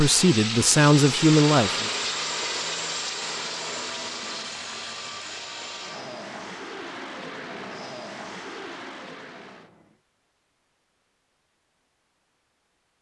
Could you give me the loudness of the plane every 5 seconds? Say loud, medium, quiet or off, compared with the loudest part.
loud, medium, off.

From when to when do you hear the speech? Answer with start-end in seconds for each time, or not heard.
0.0-1.9.